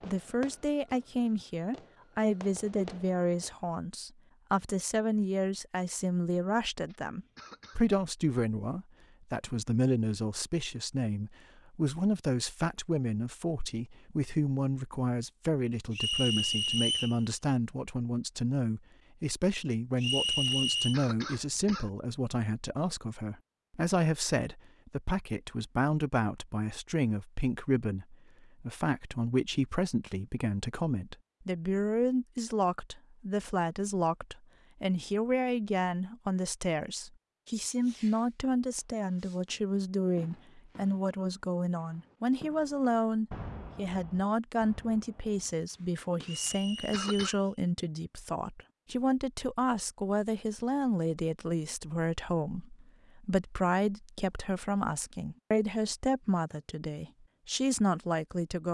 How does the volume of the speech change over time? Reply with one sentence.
The loudness of the speech stays about the same.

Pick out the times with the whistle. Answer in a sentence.
You can hear the whistle from 15.9 to 17.1 s, from 20.0 to 20.9 s and from 46.2 to 47.5 s.